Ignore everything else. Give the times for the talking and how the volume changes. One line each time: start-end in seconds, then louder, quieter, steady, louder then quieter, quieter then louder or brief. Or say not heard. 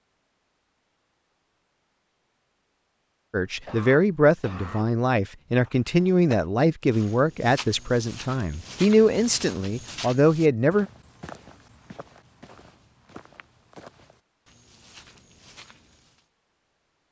3.3-10.8 steady.